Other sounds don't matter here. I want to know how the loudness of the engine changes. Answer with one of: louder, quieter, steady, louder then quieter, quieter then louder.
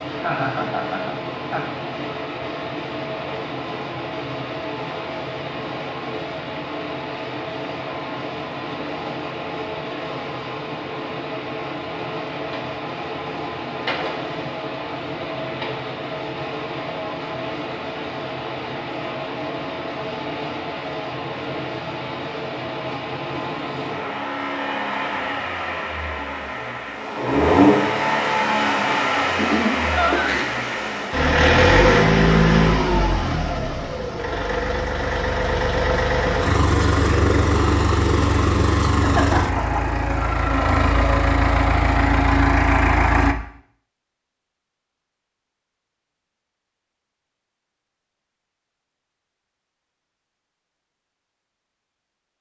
louder.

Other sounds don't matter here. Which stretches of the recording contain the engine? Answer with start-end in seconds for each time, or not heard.
0.0-43.4.